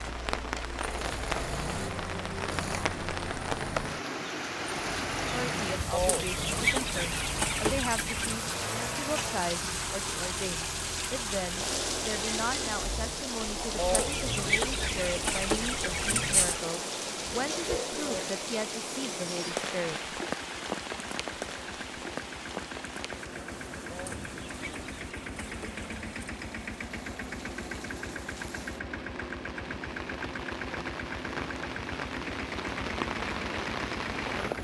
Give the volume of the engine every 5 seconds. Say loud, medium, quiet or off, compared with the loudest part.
loud, loud, loud, medium, medium, loud, loud.